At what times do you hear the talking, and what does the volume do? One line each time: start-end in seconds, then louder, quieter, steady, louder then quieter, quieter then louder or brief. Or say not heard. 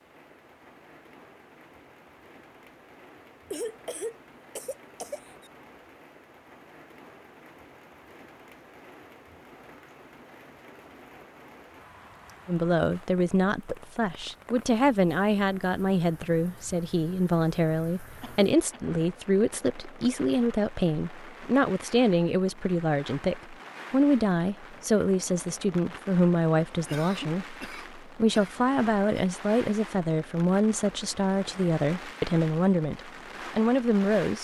12.4-34.3 steady.